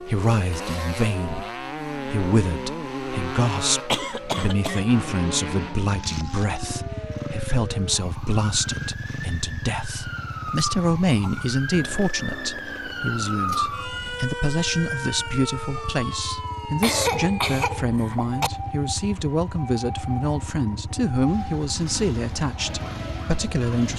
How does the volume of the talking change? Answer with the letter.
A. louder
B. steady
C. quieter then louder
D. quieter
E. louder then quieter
B.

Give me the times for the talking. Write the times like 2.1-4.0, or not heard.
0.0-23.9.